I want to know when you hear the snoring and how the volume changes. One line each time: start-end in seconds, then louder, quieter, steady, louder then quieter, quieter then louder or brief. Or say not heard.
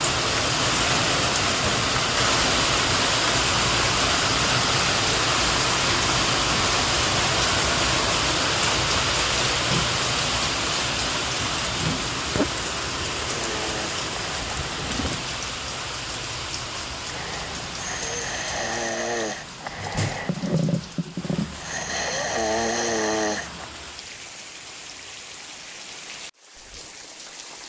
13.2-15.2 brief
17.1-23.6 louder.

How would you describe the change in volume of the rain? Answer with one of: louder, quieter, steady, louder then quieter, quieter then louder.
quieter.